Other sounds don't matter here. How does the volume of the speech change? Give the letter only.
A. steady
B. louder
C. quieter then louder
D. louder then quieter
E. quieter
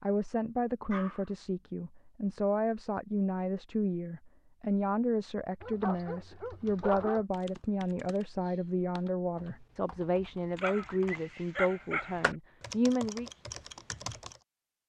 A.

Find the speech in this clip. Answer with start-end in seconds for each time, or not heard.
0.0-13.4.